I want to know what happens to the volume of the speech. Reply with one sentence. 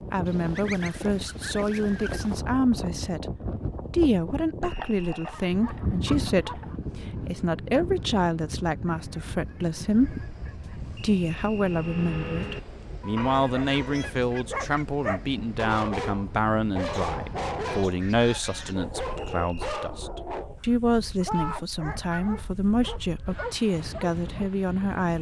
The volume of the speech stays about the same.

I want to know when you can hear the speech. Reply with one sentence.
The speech can be heard from 0.1 to 3.2 s, from 3.9 to 10.2 s and from 11.0 to 25.1 s.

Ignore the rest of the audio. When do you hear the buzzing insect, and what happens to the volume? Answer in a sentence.
You can't hear the buzzing insect here.